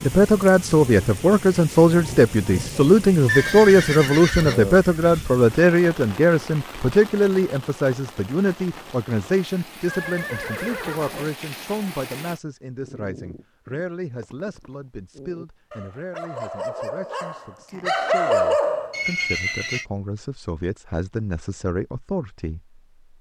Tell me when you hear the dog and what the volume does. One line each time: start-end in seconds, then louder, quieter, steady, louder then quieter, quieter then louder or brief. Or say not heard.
12.8-19.1 louder.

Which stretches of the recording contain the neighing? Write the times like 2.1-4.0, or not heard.
3.2-4.8, 9.8-11.3, 18.9-19.9.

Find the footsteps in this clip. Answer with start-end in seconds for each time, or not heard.
not heard.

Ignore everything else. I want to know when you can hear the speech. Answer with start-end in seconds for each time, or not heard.
0.0-22.8.